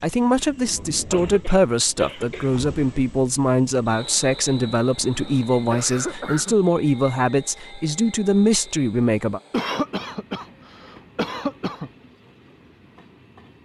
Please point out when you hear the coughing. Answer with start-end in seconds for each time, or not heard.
0.8-2.5, 5.0-6.5, 9.5-11.9.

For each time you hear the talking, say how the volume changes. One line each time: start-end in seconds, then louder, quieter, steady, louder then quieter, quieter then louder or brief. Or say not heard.
0.0-9.4 steady.